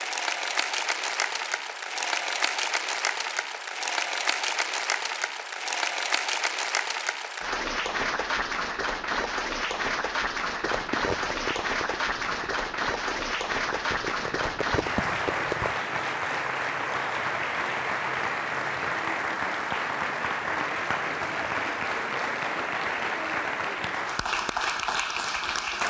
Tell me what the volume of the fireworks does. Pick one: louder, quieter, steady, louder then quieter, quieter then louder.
quieter then louder.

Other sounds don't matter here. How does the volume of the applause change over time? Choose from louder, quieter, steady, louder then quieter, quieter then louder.
steady.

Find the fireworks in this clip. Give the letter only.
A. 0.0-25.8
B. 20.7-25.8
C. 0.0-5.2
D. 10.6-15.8
D.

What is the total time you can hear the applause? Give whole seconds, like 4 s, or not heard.
26 s.